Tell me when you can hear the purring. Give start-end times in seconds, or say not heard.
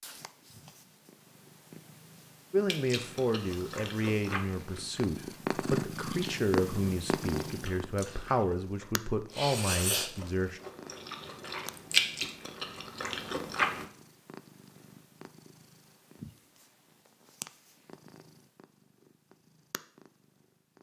0.0-20.7.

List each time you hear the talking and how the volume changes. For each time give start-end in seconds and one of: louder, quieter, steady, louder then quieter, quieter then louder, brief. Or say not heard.
2.5-10.6 steady.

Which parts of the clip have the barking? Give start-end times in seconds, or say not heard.
not heard.